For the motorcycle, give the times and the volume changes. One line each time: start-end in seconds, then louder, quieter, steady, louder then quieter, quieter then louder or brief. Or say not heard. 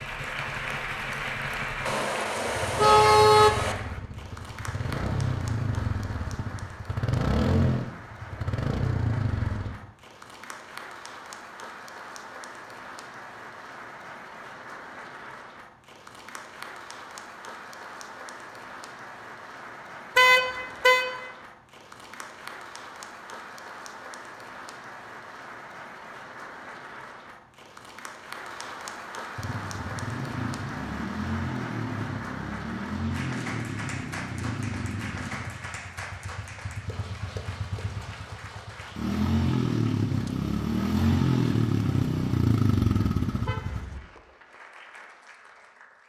0.0-9.7 louder
29.4-43.8 quieter then louder.